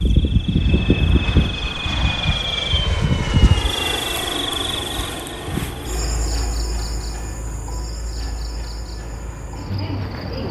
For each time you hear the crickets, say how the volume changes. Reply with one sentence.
The crickets can be heard from 0.0 to 10.4 s, getting quieter.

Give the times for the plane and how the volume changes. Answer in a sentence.
You can hear the plane from 0.0 to 10.4 s, getting quieter.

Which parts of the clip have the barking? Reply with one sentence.
You can't hear the barking here.